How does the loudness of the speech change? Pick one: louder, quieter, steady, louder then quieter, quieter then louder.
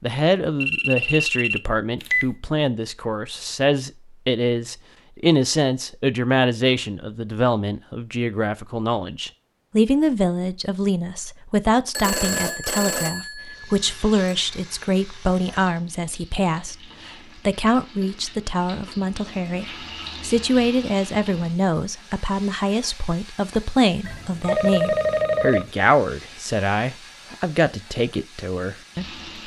steady.